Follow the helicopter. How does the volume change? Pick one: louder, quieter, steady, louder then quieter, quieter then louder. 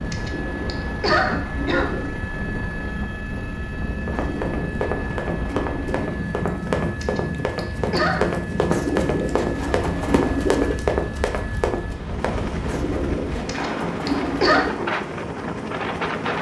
steady.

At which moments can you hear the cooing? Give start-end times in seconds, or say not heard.
0.1-2.2, 4.1-6.2, 8.7-10.8, 12.7-14.8.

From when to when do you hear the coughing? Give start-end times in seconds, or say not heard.
0.1-2.0, 7.0-8.3, 13.4-14.7.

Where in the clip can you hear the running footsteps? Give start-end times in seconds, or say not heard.
4.0-12.4.